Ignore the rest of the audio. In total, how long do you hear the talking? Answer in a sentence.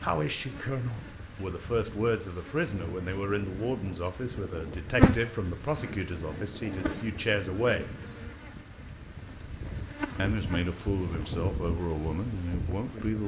The talking can be heard for 11 seconds in total.